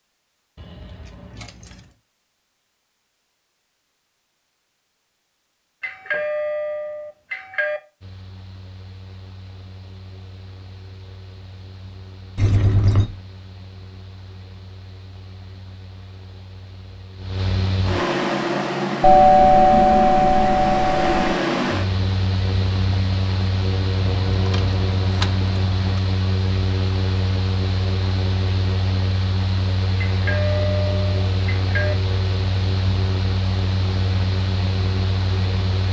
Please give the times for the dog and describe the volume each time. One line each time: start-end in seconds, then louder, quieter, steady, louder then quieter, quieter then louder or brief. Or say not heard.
not heard.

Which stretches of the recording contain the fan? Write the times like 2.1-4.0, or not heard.
8.0-35.8.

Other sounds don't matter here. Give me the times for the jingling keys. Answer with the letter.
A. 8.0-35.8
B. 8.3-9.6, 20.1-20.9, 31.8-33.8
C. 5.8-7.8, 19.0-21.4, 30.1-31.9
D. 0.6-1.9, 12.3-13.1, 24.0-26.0
D.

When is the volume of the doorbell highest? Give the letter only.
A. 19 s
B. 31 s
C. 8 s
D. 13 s
A.